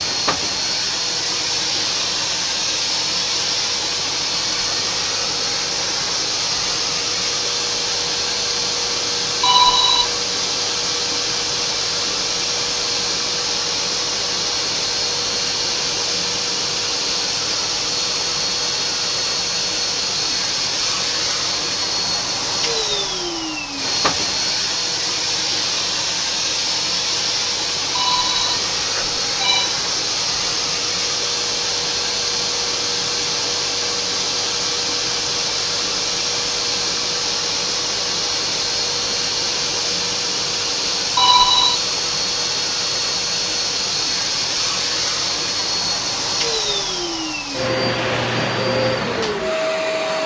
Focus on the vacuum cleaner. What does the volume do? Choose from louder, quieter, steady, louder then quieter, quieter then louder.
steady.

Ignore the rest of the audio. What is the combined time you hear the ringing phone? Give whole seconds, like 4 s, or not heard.
3 s.